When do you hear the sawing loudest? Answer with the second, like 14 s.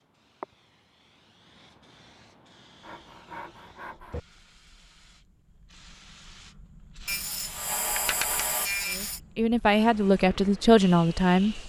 8 s.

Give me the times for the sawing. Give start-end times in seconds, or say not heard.
2.8-4.2, 7.0-9.2.